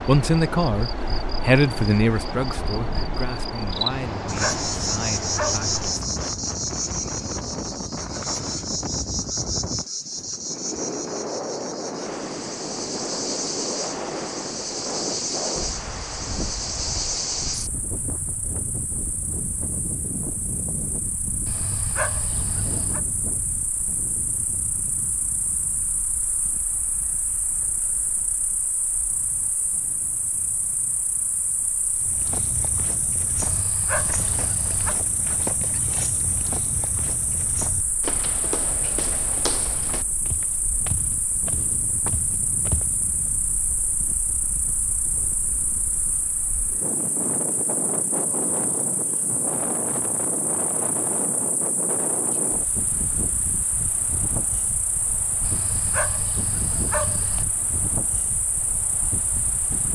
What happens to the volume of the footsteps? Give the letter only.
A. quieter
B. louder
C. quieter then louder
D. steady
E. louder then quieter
D.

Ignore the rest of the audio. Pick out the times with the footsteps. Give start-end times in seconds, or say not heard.
31.9-43.3.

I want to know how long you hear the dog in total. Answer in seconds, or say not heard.
7 s.